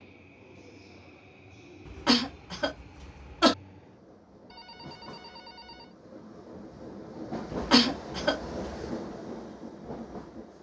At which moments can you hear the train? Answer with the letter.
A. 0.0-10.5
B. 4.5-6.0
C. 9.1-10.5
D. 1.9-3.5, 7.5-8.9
A.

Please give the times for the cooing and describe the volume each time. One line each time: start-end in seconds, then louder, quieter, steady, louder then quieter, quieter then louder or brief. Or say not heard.
not heard.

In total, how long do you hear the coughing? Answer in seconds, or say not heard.
3 s.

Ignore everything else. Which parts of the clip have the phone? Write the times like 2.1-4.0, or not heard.
4.5-6.0.